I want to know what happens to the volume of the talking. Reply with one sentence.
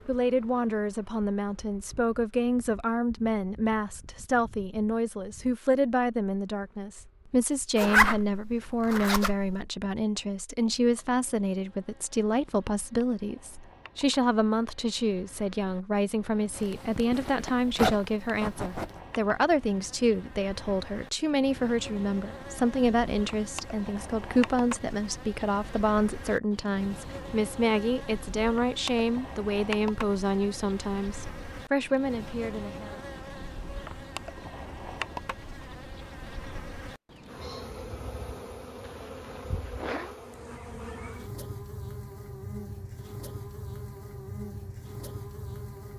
The loudness of the talking stays about the same.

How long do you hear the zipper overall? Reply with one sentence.
You can hear the zipper for 6 seconds altogether.